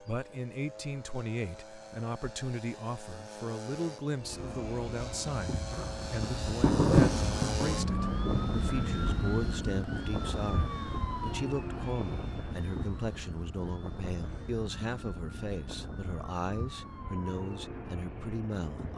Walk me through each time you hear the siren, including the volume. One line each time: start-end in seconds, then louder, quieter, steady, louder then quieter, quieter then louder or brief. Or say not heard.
4.1-18.9 louder then quieter.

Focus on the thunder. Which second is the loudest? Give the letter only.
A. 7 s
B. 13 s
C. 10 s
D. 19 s
A.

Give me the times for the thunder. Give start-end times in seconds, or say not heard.
5.7-8.4.